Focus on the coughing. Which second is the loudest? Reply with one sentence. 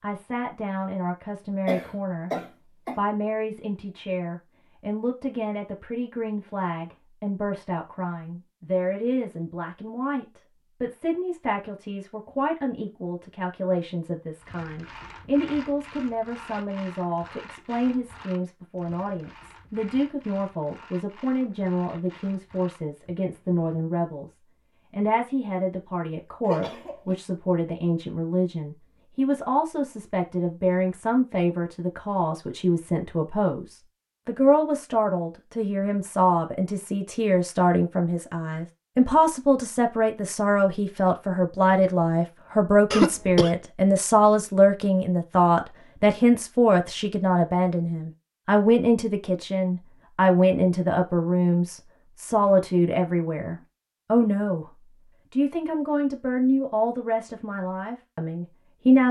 The loudest moment of the coughing is at 43 seconds.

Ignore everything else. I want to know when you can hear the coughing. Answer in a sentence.
You can hear the coughing from 1.6 to 3.0 s, from 26.4 to 27.1 s and from 42.9 to 43.5 s.